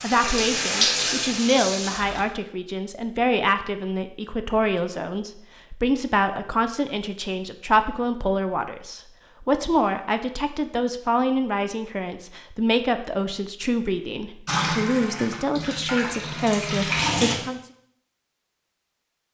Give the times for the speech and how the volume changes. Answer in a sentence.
The speech can be heard from 0.0 to 17.6 s, at a steady volume.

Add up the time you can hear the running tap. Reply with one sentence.
You can hear the running tap for 5 seconds altogether.